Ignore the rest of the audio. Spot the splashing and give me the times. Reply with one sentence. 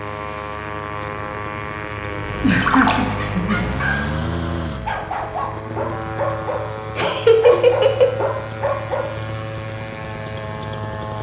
The splashing can be heard from 2.5 to 3.6 s and from 7.5 to 8.1 s.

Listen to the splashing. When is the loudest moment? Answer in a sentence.
The loudest moment of the splashing is at 3 seconds.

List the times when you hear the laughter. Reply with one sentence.
The laughter can be heard from 2.4 to 3.7 s and from 7.0 to 8.2 s.